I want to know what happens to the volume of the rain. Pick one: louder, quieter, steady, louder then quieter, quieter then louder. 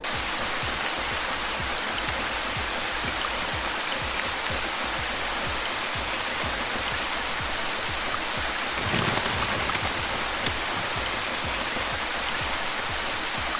steady.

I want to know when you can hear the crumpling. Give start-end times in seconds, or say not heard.
8.8-11.3.